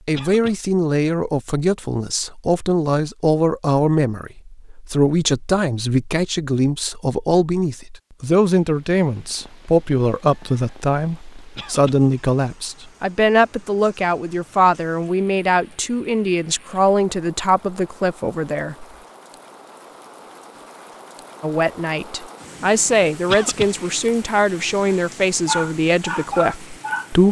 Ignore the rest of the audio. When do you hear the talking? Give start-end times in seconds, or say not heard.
0.1-18.9, 21.4-27.2.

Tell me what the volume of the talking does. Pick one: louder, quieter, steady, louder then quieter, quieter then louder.
steady.